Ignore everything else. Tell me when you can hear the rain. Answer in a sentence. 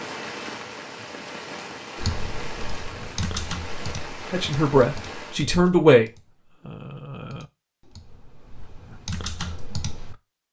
The rain can be heard from 0.0 to 5.5 s.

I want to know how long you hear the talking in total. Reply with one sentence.
The talking can be heard for 2 seconds in total.